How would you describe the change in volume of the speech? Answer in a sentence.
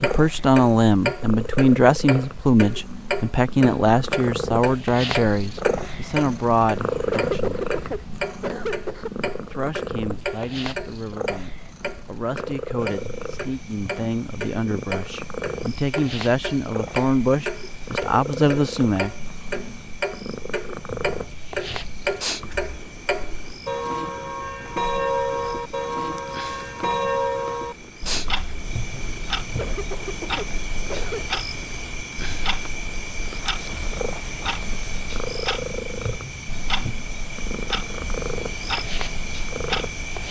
The loudness of the speech goes down, then up.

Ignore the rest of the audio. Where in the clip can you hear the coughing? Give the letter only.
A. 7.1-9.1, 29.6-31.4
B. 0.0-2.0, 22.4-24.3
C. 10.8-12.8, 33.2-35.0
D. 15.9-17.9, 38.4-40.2
A.